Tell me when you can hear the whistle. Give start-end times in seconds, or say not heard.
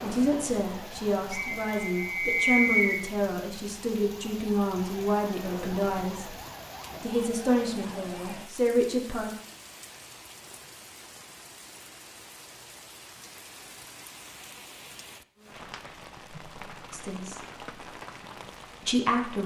1.3-3.0.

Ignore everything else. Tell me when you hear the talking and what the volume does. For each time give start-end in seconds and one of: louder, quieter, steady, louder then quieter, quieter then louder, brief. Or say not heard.
0.0-6.3 steady
7.0-9.3 brief
16.9-17.4 brief
18.8-19.4 brief.